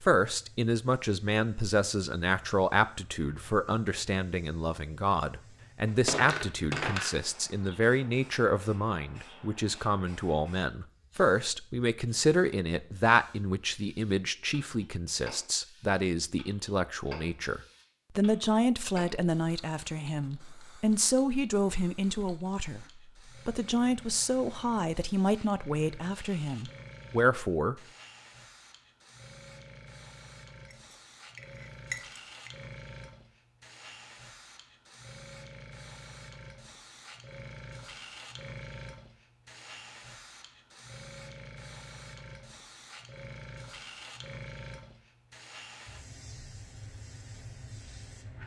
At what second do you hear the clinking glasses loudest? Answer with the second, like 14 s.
7 s.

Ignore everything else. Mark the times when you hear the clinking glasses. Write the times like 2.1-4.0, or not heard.
5.8-7.2, 30.7-32.5.